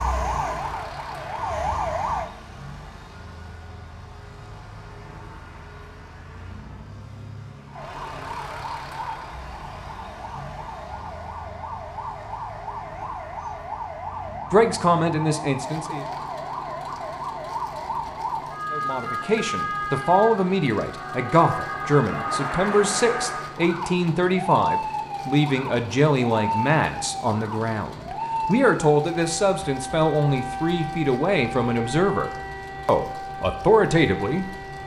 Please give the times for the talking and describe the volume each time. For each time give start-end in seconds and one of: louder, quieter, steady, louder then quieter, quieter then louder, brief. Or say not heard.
14.5-16.1 brief
18.7-34.5 steady.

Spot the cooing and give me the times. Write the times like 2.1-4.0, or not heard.
not heard.